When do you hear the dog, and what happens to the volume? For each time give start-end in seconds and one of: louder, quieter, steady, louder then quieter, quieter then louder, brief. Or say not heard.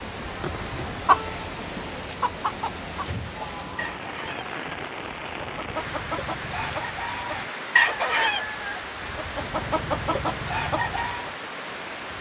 not heard.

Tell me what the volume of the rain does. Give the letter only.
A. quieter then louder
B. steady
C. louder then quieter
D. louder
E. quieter
B.